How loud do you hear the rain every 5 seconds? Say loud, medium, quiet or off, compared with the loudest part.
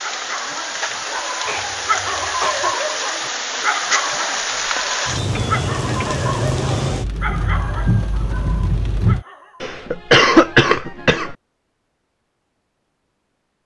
loud, loud, off.